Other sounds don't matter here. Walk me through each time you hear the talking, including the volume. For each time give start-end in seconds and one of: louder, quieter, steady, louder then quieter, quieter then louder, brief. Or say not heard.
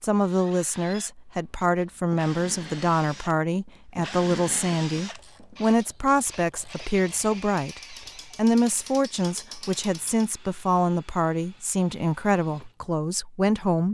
0.0-13.8 steady.